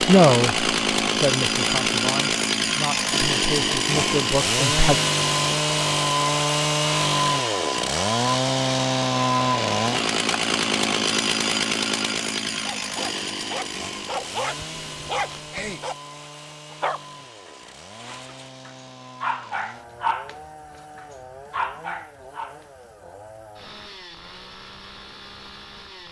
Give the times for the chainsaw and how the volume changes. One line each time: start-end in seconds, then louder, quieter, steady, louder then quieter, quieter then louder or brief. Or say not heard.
0.0-26.0 quieter.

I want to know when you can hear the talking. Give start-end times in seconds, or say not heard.
0.0-5.0.